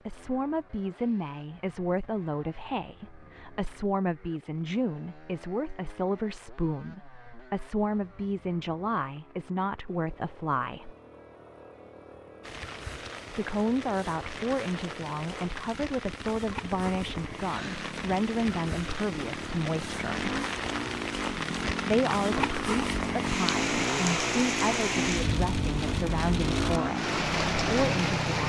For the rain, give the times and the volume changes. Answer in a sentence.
You can hear the rain from 12.4 to 28.4 s, getting louder.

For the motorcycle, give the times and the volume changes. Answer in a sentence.
The motorcycle can be heard from 0.0 to 28.4 s, getting louder.